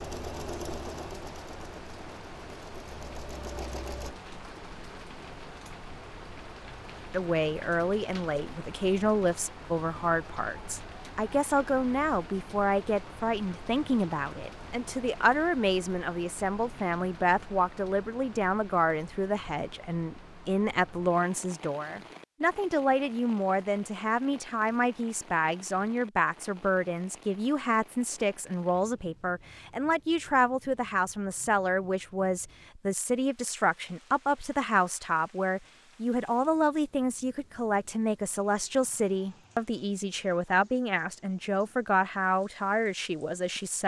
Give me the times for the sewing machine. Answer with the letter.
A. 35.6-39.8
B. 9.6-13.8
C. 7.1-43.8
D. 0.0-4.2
D.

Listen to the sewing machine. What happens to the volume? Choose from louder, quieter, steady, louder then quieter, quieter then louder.
quieter then louder.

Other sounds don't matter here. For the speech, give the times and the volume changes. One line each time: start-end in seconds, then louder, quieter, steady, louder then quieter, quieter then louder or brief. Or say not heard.
7.1-43.8 steady.